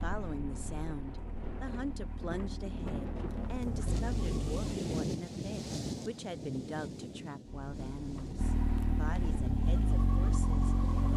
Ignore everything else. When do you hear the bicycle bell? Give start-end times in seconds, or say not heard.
not heard.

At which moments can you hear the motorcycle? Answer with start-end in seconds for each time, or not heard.
0.0-4.7, 7.5-11.1.